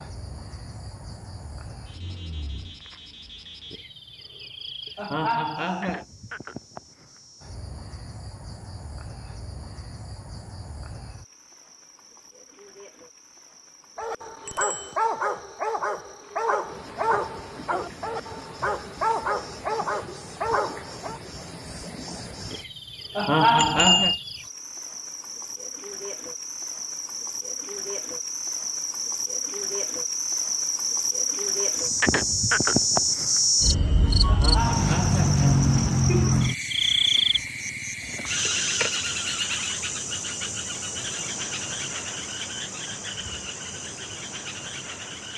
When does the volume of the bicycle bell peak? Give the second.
24 s.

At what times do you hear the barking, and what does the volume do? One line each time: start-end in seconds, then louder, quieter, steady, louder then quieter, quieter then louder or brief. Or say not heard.
13.9-21.2 steady.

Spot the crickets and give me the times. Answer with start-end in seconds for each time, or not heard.
0.0-45.3.